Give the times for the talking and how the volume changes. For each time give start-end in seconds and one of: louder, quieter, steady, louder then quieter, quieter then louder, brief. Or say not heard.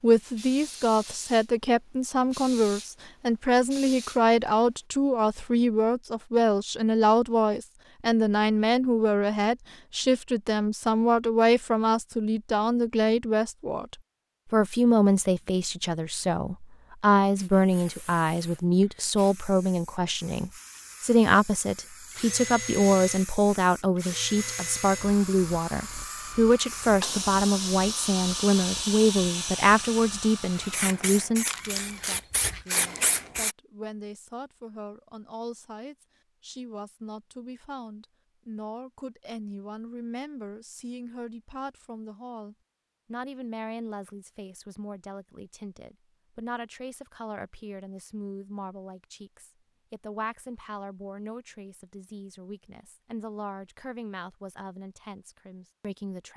0.0-56.3 quieter.